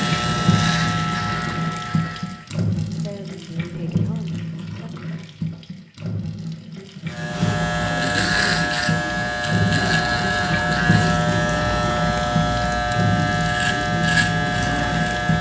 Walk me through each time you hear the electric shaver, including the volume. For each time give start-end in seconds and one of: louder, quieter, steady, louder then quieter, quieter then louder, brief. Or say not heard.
0.0-2.5 brief
7.0-15.3 steady.